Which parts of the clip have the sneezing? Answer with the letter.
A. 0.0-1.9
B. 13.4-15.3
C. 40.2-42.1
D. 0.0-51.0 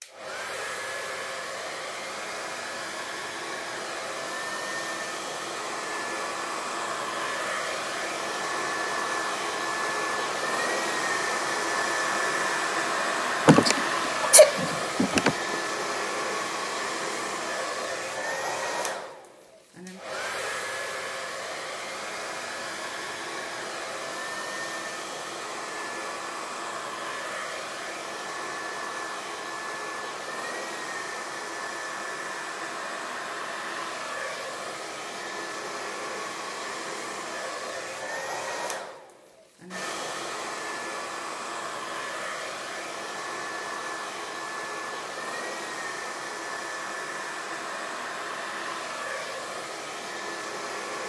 B.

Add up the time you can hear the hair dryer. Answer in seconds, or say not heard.
51 s.